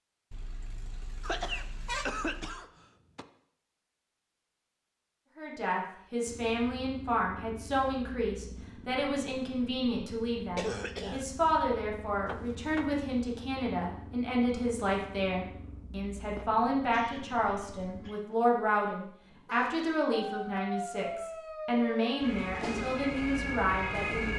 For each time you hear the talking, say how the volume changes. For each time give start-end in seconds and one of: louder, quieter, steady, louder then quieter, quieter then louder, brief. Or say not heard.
5.3-24.3 steady.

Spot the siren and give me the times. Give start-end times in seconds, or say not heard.
20.1-24.3.